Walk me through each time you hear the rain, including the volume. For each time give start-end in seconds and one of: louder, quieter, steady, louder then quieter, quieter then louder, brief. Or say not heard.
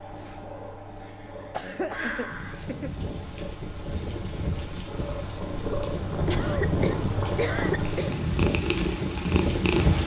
2.2-10.0 louder.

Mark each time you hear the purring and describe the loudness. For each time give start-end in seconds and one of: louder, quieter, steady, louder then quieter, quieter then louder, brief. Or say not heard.
0.0-10.0 louder.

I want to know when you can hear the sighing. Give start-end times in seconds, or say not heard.
1.1-2.6.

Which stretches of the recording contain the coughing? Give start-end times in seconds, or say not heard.
1.5-3.0, 6.2-8.2.